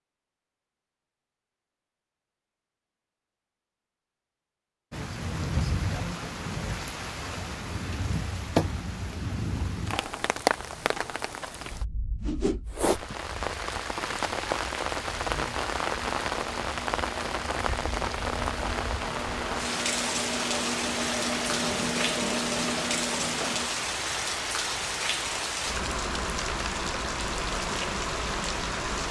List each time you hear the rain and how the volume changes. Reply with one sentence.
The rain can be heard from 4.9 to 29.0 s, at a steady volume.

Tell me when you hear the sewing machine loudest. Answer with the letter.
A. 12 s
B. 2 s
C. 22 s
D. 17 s
C.